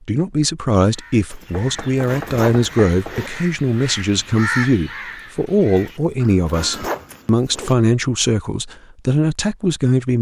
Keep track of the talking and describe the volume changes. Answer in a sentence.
The volume of the talking stays about the same.